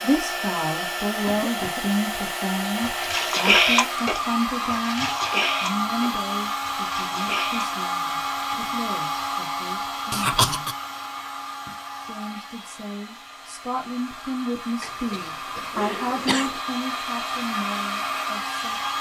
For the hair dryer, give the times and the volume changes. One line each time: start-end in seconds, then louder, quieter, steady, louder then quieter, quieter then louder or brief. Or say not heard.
0.0-18.9 quieter then louder.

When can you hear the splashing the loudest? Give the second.
4 s.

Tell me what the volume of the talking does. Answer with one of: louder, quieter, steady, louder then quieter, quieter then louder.
quieter then louder.